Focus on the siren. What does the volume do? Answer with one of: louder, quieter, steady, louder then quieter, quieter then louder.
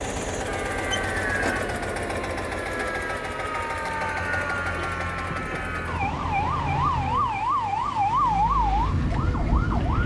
louder.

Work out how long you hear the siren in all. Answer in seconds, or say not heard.
10 s.